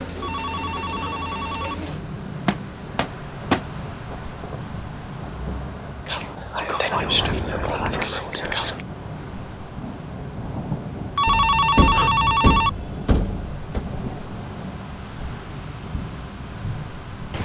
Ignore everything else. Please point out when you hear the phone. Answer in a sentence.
You can hear the phone from 0.2 to 1.8 s and from 11.2 to 12.7 s.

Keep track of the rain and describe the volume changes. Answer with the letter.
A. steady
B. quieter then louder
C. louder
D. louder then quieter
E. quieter
A.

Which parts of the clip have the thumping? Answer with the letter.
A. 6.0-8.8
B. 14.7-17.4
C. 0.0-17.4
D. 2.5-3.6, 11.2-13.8
D.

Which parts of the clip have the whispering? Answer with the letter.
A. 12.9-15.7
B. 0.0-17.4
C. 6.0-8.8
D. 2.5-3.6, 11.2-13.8
C.